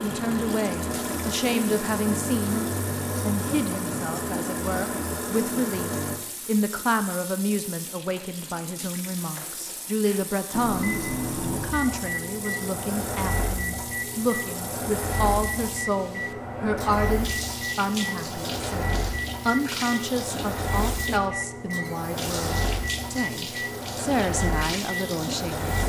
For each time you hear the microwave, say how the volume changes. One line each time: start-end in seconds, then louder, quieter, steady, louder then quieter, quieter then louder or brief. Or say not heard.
0.0-6.2 steady
10.5-25.8 steady.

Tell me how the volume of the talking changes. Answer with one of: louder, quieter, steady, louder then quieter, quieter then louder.
steady.